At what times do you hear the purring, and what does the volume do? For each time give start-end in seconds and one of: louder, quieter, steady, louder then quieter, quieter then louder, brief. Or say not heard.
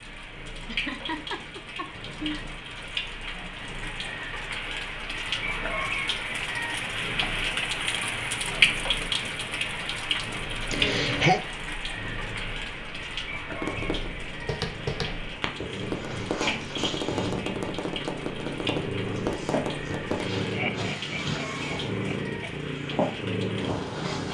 0.0-24.2 louder.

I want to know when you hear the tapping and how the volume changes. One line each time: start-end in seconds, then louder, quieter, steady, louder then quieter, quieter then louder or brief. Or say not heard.
13.4-20.3 steady.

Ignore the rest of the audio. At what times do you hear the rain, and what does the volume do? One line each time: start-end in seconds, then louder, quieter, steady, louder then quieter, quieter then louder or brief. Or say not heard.
0.0-24.2 louder then quieter.